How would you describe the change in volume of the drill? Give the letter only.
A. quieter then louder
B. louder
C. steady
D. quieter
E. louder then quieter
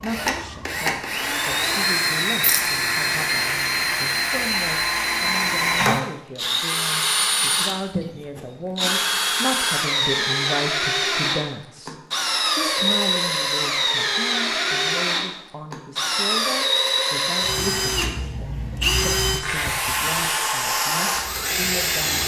C.